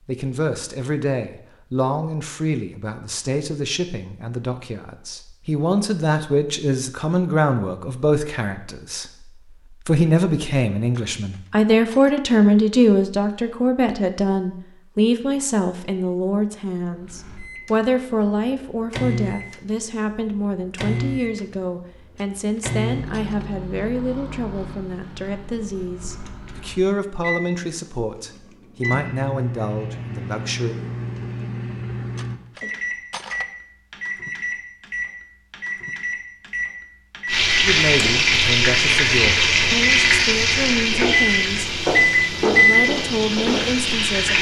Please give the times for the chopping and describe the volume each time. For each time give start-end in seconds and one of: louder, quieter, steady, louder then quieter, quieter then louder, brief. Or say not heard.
not heard.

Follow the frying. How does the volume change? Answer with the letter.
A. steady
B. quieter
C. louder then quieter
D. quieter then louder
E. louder
B.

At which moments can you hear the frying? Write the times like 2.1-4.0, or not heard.
37.2-44.3.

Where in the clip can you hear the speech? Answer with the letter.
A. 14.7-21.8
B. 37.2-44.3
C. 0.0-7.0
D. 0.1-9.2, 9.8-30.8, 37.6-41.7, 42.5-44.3
D.